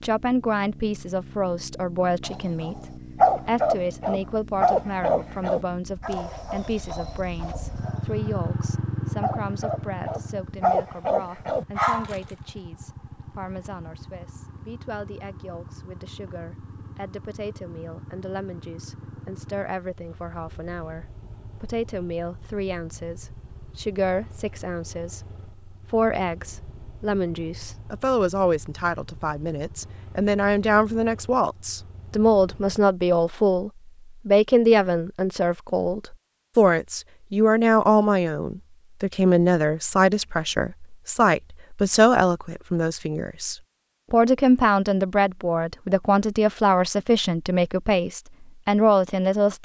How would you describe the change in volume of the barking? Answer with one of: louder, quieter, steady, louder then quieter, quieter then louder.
quieter then louder.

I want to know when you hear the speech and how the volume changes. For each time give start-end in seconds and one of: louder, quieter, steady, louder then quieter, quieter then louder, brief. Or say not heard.
0.0-49.6 quieter then louder.